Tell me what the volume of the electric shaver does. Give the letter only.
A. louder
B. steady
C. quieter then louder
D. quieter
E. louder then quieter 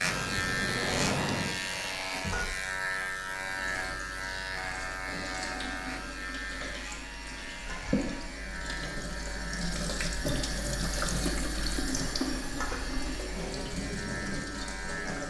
D.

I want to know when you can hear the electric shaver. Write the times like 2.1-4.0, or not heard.
0.0-15.2.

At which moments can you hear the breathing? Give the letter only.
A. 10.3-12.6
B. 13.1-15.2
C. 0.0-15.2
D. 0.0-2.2
D.